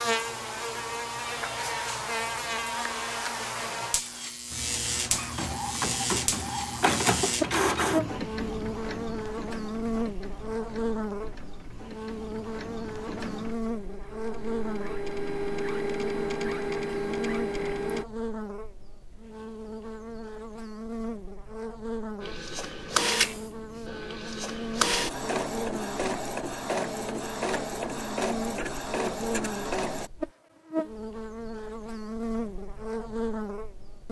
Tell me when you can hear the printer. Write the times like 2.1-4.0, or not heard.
4.5-18.1, 22.2-30.1.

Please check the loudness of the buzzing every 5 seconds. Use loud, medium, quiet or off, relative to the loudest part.
loud, loud, loud, medium, medium, medium, loud.